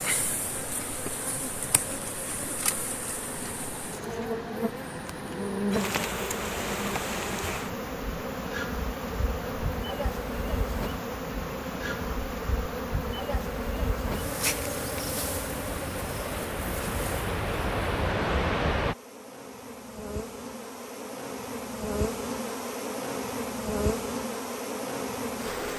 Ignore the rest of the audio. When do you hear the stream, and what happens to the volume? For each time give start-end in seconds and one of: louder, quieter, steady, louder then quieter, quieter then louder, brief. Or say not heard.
0.0-18.9 louder.